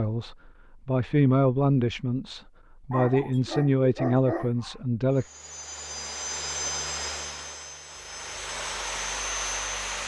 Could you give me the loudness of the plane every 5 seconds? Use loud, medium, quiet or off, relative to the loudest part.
off, loud.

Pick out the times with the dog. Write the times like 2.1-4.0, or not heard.
2.9-4.8.